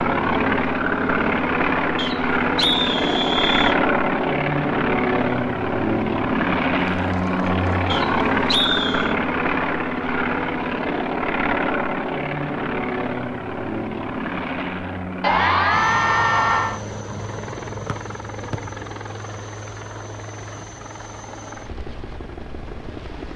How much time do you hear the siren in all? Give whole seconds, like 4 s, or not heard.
not heard.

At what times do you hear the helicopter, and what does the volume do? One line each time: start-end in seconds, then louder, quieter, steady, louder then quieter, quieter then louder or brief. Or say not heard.
0.0-23.3 quieter.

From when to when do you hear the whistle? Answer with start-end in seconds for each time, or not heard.
1.9-3.8, 7.9-9.2, 17.9-18.6.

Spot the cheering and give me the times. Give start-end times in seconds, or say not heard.
6.8-8.5, 15.2-16.8.